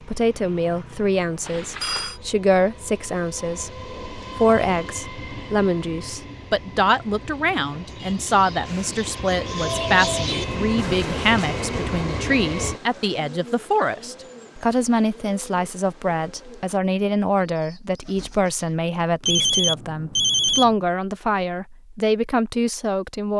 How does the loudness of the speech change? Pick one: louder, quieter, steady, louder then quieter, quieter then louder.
steady.